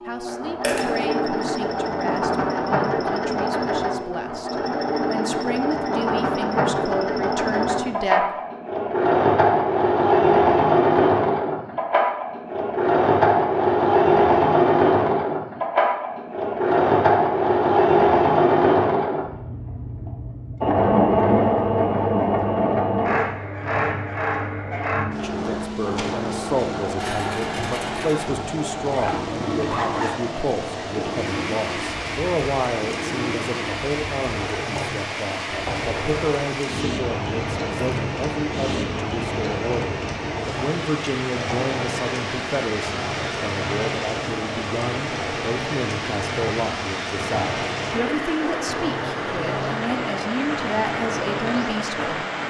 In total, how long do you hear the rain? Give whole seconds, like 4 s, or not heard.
27 s.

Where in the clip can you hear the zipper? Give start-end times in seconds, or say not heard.
28.9-30.4.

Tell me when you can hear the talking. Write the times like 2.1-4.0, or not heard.
0.0-8.2, 25.1-52.4.